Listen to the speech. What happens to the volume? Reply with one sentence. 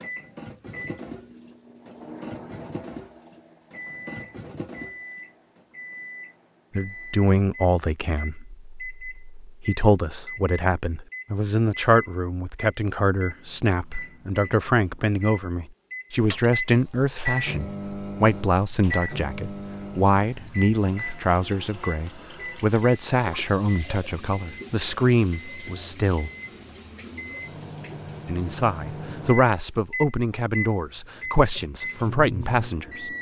The loudness of the speech stays about the same.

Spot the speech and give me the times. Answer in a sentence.
The speech can be heard from 6.8 to 26.3 s and from 28.2 to 33.1 s.